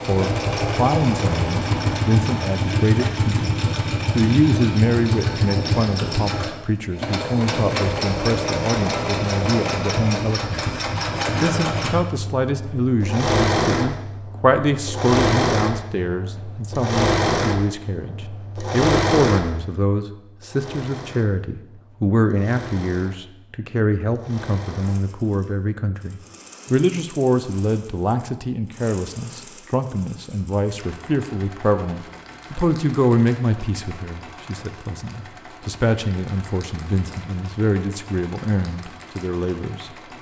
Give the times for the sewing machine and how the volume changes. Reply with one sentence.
You can hear the sewing machine from 0.0 to 40.1 s, getting quieter.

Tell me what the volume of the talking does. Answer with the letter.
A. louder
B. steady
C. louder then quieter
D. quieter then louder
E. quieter
B.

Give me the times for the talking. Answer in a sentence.
The talking can be heard from 0.1 to 10.7 s and from 11.4 to 39.9 s.